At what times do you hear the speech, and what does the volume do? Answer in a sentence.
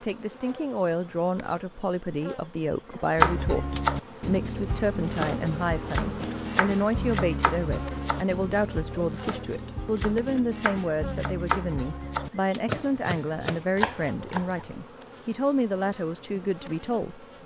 You can hear the speech from 0.0 to 17.2 s, at a steady volume.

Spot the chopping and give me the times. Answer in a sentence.
The chopping can be heard from 3.1 to 14.8 s.